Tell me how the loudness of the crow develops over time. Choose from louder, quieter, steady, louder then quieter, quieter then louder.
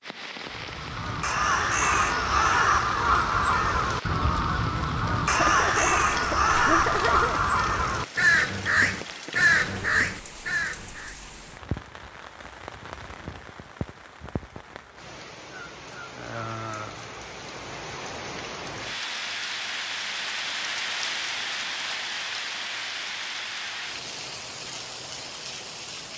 steady.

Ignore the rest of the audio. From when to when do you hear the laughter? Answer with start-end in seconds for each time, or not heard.
5.3-7.4.